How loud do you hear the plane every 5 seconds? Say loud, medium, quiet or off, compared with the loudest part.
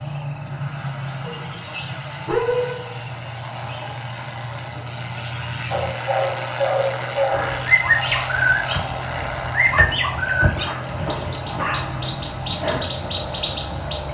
medium, loud, loud.